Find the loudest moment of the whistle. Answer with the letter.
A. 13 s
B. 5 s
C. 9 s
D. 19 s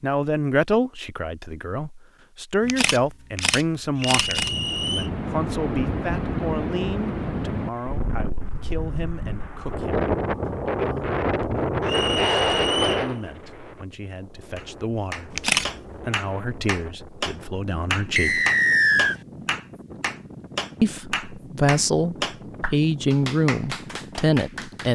D.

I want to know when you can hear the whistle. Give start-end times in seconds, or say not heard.
4.0-5.1, 11.8-13.1, 18.1-19.1.